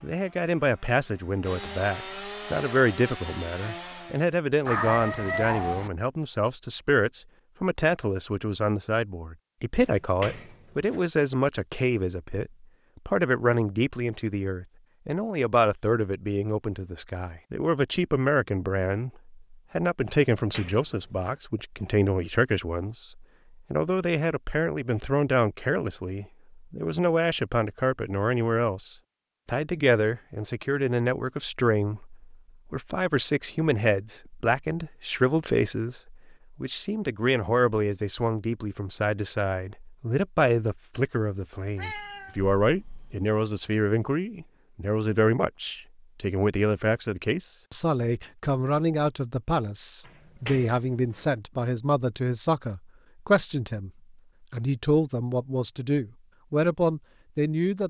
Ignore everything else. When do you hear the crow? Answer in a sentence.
You can't hear the crow here.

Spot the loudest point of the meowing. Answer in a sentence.
The volume of the meowing peaks at 5 seconds.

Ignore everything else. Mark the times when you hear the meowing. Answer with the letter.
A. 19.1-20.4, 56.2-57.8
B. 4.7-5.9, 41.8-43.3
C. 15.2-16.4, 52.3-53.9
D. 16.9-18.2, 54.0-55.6
B.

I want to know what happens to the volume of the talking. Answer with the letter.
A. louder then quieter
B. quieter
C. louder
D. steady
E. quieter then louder
D.